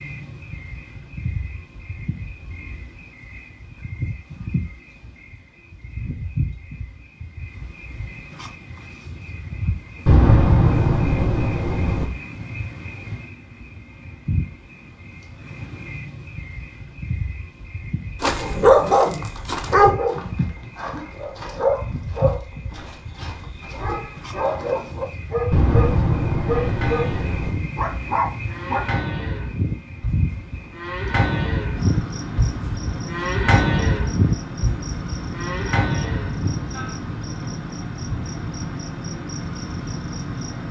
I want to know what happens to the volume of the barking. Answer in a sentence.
The volume of the barking goes down, then up.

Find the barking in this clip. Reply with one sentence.
You can hear the barking from 18.2 to 28.9 s.